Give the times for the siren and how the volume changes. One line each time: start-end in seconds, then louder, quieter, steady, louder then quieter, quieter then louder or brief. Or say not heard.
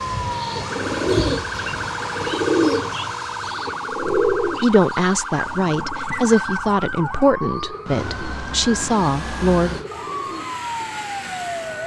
0.2-11.8 steady.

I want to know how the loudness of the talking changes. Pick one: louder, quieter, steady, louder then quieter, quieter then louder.
quieter then louder.